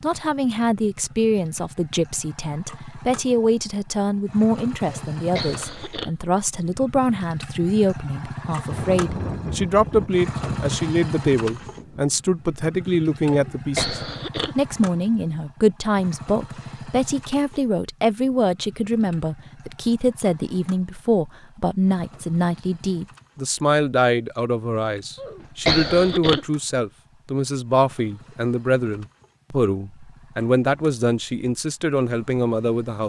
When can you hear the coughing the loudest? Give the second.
26 s.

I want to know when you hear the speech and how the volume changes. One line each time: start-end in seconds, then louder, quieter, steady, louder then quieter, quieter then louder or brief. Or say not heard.
0.0-33.0 steady.